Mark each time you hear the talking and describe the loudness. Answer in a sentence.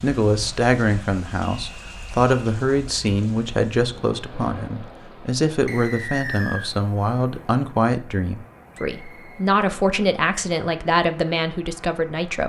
You can hear the talking from 0.0 to 12.4 s, at a steady volume.